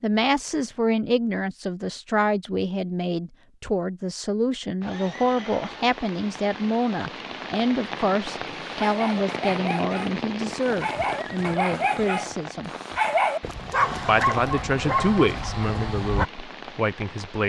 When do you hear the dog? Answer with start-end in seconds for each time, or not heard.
8.8-16.3.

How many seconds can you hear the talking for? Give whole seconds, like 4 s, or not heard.
16 s.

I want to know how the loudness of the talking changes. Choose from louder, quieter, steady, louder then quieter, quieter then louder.
steady.